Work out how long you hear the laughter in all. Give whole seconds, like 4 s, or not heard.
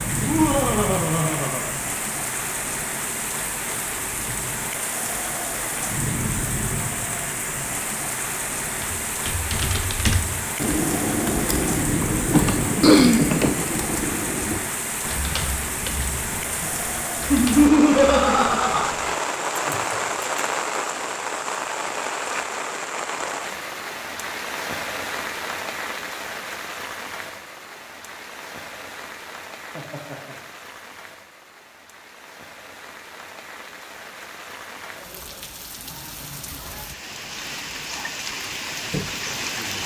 4 s.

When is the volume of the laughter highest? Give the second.
18 s.